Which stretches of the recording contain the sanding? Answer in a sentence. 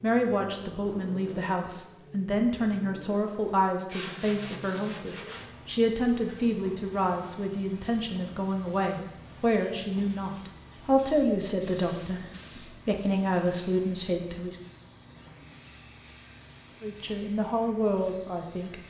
The sanding can be heard from 3.9 to 5.5 s.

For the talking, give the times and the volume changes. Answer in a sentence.
The talking can be heard from 0.0 to 14.6 s, at a steady volume; and briefly from 16.8 to 18.8 s.